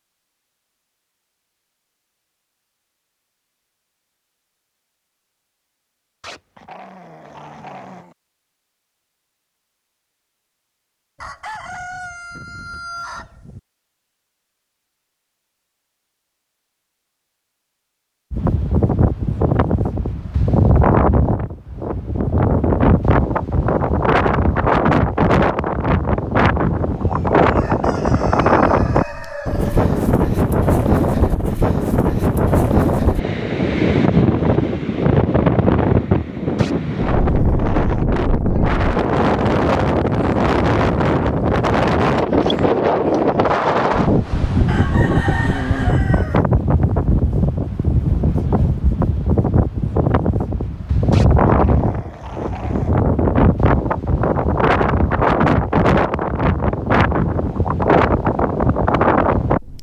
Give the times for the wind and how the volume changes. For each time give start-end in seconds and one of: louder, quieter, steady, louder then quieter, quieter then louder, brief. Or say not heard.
18.3-59.7 steady.